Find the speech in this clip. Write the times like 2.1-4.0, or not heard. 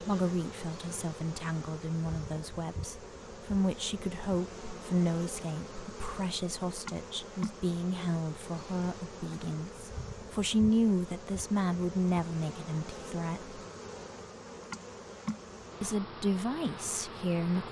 0.0-13.6, 15.8-17.6.